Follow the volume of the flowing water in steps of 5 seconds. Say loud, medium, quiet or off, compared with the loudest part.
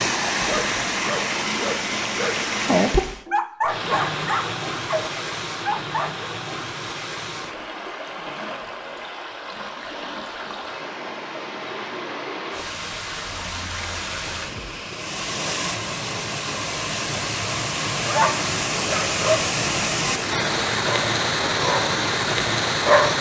loud, medium, medium, loud, loud.